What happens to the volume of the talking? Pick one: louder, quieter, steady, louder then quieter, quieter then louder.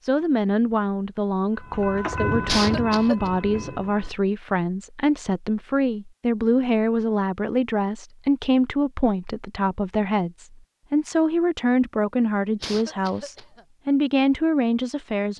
steady.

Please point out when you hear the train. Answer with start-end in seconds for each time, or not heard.
1.6-4.2.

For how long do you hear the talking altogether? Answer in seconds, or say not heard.
15 s.